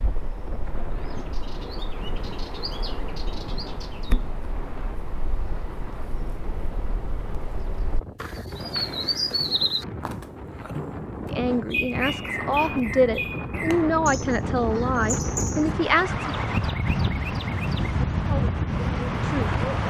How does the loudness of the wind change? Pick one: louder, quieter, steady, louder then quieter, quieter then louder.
louder.